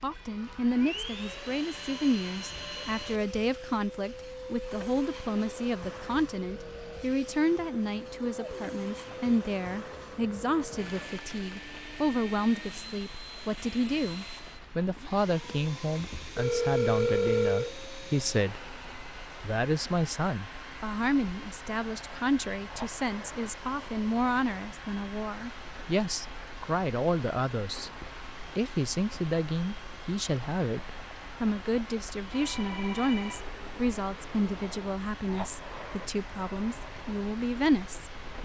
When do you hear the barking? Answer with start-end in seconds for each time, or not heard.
not heard.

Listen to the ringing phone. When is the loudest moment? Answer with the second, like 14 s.
17 s.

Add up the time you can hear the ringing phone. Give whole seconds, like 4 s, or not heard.
4 s.